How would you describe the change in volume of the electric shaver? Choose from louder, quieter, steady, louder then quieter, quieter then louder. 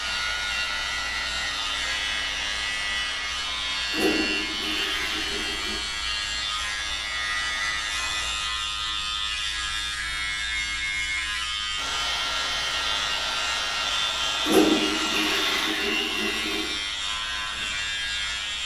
steady.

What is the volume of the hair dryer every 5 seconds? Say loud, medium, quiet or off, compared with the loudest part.
medium, medium, loud, medium.